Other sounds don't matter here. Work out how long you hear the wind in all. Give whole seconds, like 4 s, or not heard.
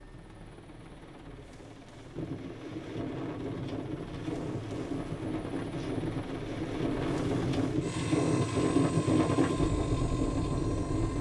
9 s.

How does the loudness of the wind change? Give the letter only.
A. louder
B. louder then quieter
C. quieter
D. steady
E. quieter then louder
A.